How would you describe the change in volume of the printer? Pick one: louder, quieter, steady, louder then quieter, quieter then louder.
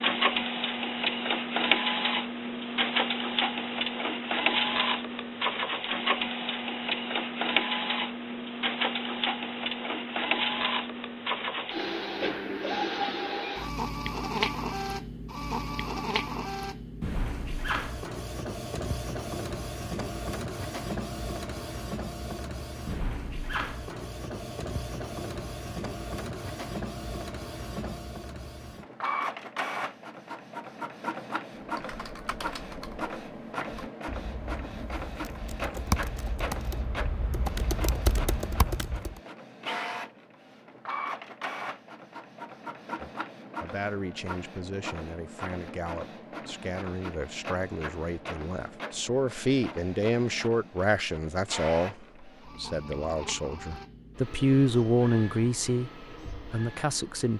quieter.